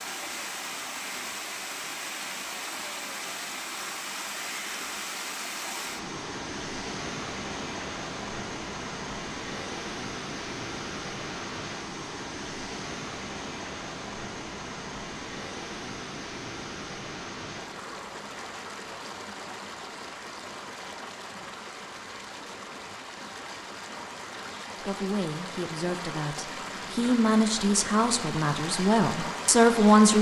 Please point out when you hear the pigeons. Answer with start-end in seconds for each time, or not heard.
not heard.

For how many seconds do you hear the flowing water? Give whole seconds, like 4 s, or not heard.
30 s.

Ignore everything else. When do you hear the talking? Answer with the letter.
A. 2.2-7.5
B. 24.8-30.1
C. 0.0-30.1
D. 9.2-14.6
B.